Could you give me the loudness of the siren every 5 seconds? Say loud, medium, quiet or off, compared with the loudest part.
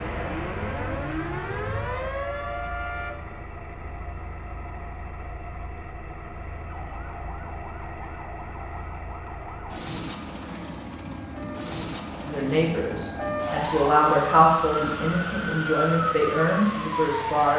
loud, quiet, medium, loud.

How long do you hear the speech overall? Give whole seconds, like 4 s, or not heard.
5 s.